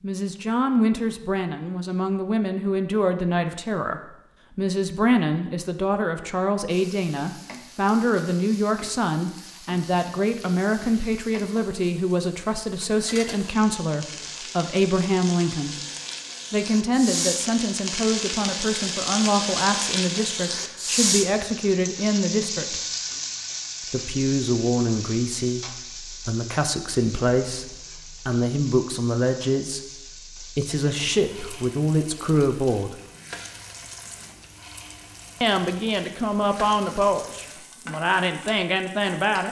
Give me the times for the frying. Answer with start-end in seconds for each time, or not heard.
6.7-39.4.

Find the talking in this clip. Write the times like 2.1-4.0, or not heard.
0.0-15.8, 16.5-22.8, 23.9-33.0, 35.4-39.4.